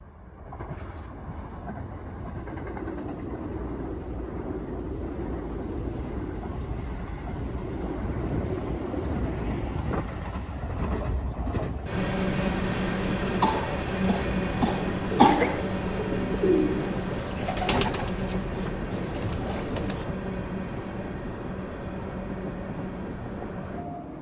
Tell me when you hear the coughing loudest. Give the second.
15 s.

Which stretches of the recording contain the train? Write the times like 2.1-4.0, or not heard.
0.0-24.1.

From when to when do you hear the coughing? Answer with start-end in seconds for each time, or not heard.
13.4-15.7.